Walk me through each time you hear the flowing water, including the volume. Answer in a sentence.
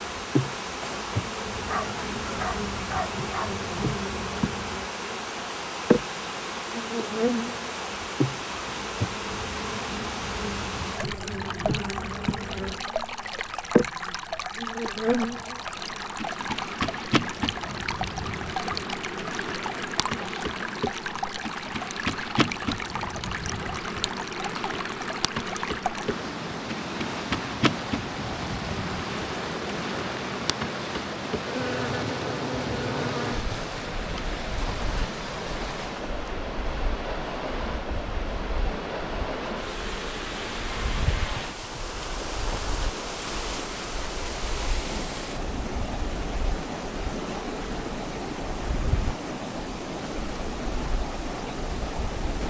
The flowing water can be heard from 0.0 to 52.4 s, at a steady volume.